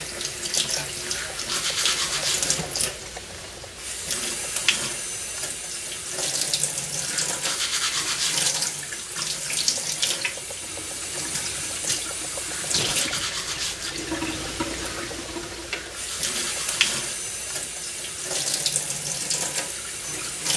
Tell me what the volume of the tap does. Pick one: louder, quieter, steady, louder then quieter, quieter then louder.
steady.